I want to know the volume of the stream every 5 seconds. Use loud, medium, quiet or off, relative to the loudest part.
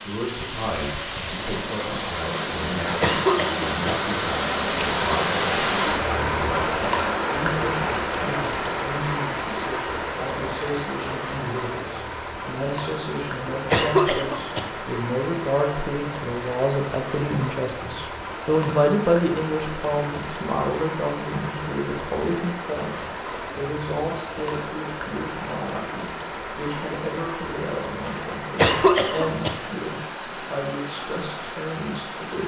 loud, loud, medium, medium, medium, medium, medium.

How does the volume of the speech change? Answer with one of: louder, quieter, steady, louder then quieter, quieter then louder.
louder then quieter.